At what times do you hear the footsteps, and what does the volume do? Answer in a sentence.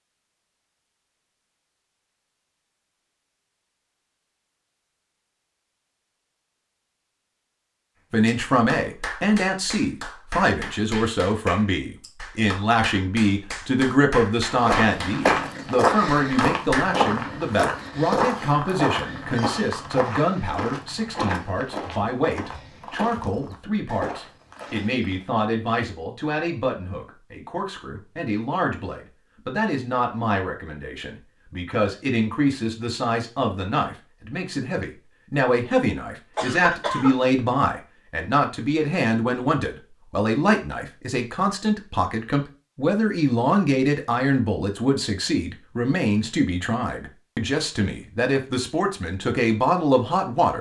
The footsteps can be heard from 14.5 to 25.2 s, getting quieter.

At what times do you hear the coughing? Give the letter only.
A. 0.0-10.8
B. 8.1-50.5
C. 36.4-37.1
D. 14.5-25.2
C.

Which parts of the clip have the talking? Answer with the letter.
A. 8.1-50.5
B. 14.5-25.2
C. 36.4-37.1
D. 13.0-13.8
A.